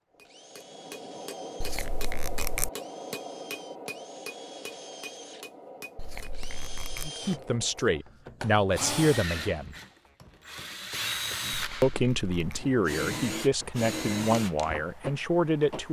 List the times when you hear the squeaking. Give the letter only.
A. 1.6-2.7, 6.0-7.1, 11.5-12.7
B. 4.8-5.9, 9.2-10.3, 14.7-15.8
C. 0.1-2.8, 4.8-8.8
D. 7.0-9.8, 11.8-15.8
A.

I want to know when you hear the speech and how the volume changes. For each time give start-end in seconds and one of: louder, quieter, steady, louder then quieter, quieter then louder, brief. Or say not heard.
7.0-9.8 brief
11.8-15.8 steady.